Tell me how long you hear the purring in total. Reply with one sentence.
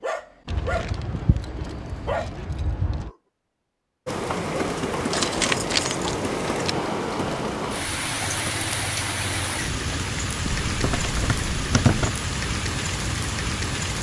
The purring can't be heard in this clip.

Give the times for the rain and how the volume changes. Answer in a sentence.
The rain can be heard from 4.0 to 13.9 s, at a steady volume.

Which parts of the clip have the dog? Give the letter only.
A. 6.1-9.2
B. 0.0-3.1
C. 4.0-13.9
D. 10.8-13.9
B.